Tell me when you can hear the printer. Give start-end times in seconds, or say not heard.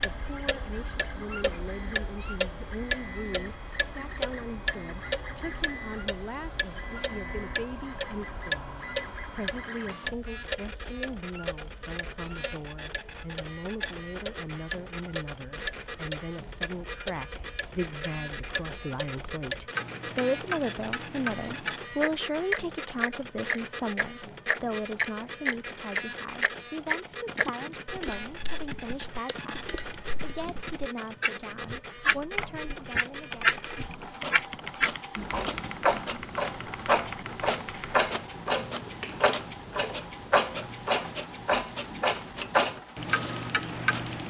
0.0-44.2.